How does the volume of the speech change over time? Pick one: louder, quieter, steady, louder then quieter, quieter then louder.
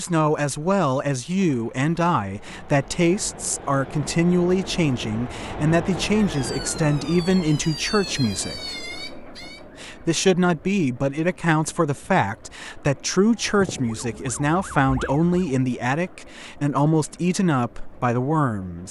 steady.